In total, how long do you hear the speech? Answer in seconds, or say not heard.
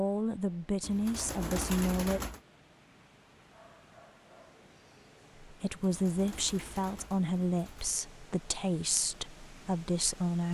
7 s.